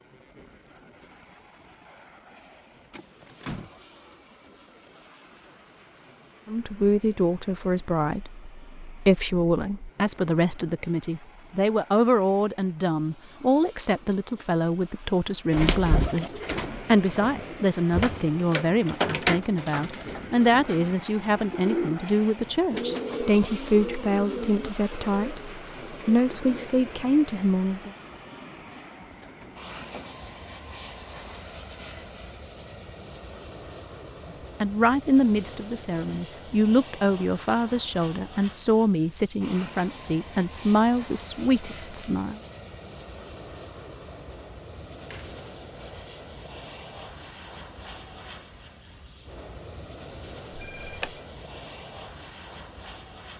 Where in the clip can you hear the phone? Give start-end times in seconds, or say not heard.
50.5-51.2.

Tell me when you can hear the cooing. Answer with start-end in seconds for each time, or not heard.
15.5-26.7.